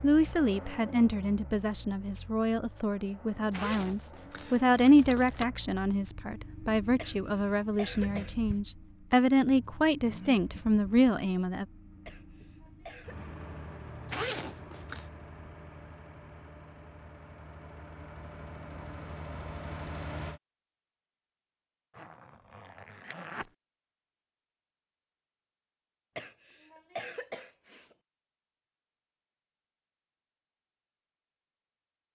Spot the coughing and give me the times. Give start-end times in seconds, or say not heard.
7.0-8.6, 12.1-13.2, 26.1-27.9.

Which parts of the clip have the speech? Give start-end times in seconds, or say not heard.
0.0-11.7.